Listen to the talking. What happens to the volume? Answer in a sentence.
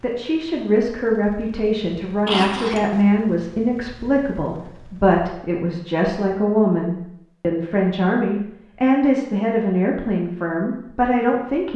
The loudness of the talking stays about the same.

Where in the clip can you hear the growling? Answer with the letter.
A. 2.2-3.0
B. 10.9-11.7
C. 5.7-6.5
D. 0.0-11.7
A.